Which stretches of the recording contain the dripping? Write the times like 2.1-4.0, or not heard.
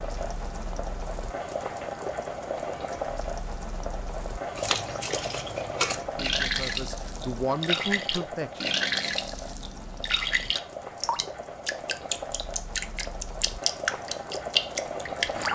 4.5-15.4.